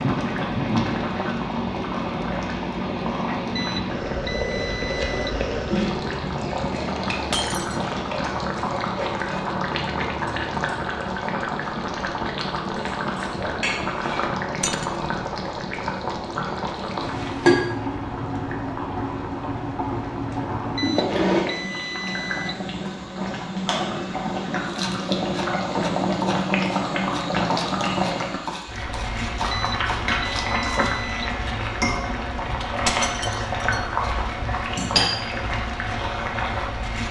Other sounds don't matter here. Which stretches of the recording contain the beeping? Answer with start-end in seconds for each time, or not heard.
3.5-5.3, 20.8-22.6, 29.5-31.4.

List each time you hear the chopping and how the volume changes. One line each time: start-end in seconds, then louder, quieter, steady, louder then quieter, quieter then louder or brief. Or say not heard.
24.6-30.9 steady.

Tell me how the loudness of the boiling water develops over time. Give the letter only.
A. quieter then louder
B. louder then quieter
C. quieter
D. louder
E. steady
E.